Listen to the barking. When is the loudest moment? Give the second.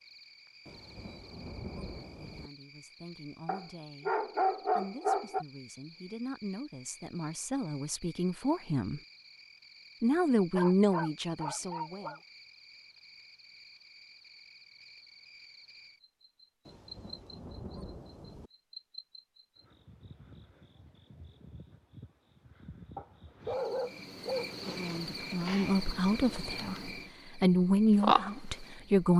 5 s.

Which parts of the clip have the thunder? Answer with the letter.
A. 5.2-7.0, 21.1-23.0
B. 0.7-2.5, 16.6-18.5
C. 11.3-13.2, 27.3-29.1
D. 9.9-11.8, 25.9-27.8
B.